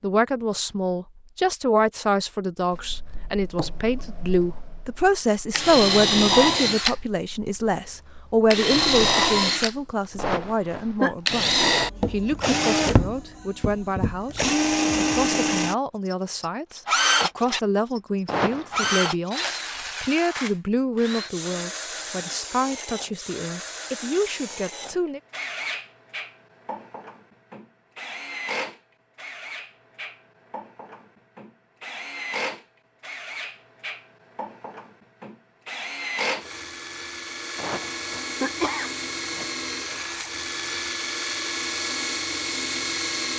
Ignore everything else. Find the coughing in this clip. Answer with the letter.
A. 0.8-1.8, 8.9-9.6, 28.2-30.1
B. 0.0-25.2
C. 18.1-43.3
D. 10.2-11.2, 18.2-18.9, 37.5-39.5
D.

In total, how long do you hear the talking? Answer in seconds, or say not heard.
25 s.